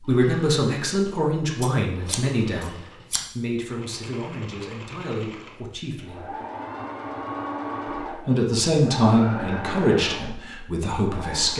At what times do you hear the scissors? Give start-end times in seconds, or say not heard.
1.6-3.2.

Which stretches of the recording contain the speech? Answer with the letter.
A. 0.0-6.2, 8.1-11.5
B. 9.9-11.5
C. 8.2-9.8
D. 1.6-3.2
A.